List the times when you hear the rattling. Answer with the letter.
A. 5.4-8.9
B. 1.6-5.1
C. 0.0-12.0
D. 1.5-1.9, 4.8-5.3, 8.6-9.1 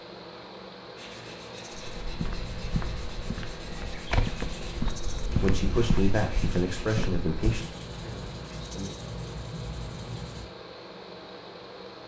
D.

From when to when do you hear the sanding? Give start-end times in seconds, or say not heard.
0.9-10.4.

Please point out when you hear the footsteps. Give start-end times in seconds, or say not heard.
1.9-7.5.